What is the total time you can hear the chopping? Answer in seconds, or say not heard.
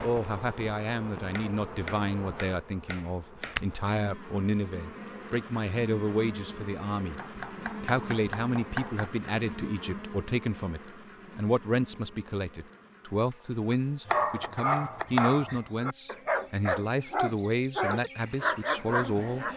6 s.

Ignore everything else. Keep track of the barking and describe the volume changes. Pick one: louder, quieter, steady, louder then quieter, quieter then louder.
quieter then louder.